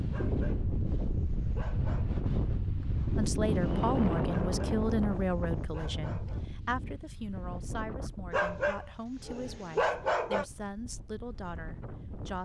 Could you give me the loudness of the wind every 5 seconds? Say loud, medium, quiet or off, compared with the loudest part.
loud, medium, quiet.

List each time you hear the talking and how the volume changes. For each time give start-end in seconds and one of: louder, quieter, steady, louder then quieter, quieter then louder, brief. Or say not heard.
3.1-12.4 quieter.